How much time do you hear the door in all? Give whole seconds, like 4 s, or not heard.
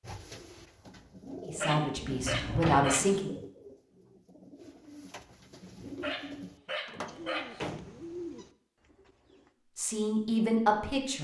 2 s.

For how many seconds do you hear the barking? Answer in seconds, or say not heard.
3 s.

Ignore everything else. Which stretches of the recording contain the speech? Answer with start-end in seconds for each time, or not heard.
1.4-3.4, 9.8-11.2.